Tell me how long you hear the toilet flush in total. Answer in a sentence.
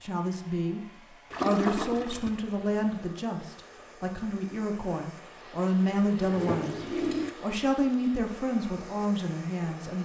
The toilet flush can be heard for 3 seconds in total.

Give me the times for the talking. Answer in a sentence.
You can hear the talking from 0.0 to 0.8 s, from 1.4 to 6.8 s and from 7.4 to 10.0 s.